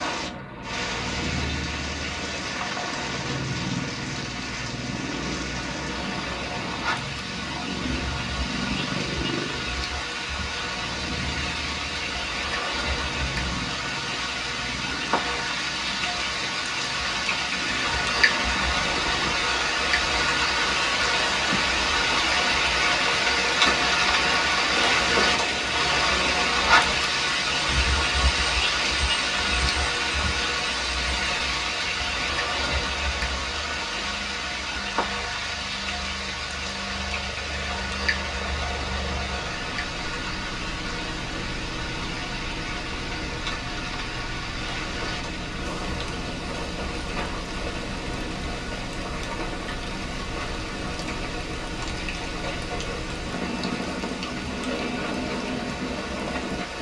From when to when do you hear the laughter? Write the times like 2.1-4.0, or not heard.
not heard.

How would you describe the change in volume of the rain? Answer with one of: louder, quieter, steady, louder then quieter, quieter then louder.
louder then quieter.